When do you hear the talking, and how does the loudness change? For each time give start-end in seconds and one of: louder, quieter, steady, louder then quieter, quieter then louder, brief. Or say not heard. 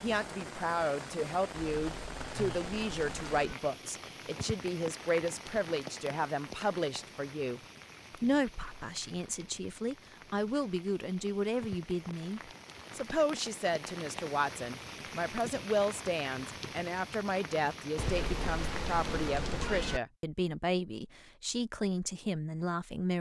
0.0-23.1 steady.